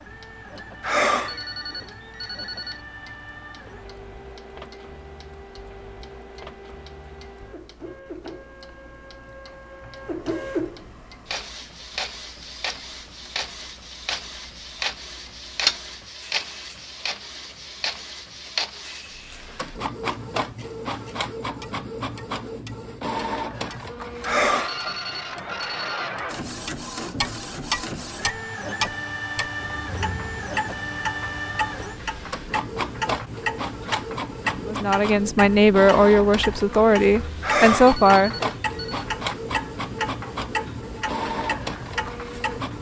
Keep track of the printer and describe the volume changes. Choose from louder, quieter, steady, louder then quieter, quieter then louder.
louder.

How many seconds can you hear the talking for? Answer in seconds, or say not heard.
4 s.